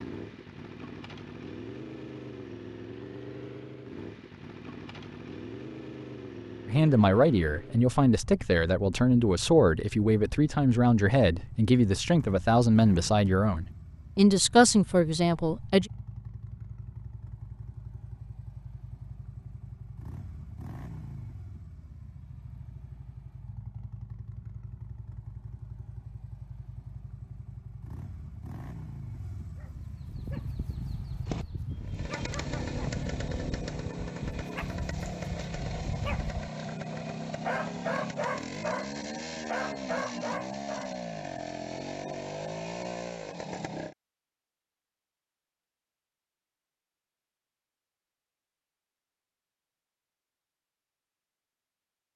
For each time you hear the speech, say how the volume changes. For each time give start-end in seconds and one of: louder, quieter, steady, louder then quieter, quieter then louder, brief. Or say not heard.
6.7-15.9 steady.